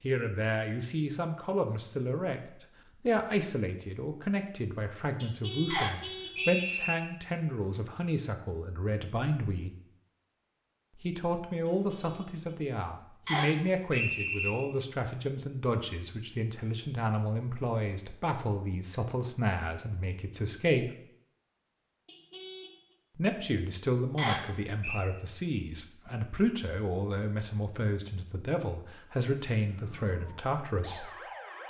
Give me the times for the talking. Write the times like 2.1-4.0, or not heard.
0.0-9.8, 10.9-20.9, 23.1-31.6.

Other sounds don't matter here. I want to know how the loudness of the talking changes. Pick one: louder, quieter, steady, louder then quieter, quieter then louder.
steady.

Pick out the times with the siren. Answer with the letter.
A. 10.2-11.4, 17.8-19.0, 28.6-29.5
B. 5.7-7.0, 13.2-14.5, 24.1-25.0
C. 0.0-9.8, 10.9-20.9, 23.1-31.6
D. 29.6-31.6
D.